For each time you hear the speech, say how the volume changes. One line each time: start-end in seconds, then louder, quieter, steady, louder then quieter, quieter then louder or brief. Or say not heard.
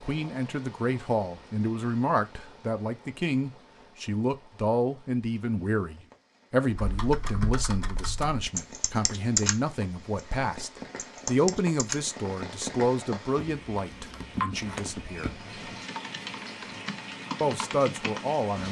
0.1-15.4 steady
17.4-18.6 brief.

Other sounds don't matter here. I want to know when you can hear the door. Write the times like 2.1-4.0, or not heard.
14.5-15.8.